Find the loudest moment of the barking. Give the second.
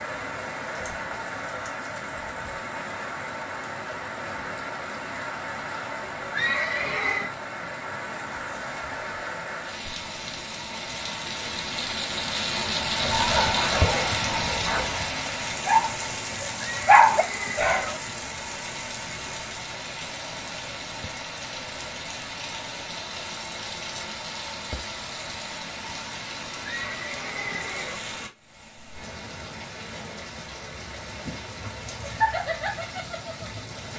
17 s.